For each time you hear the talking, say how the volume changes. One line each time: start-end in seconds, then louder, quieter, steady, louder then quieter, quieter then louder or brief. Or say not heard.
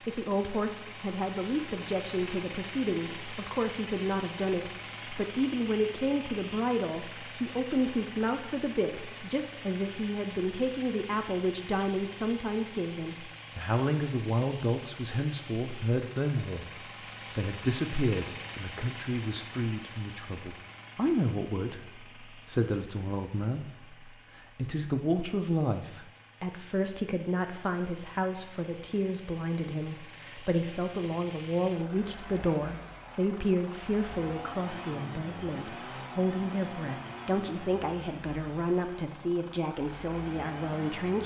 0.1-16.6 steady
17.4-41.2 steady.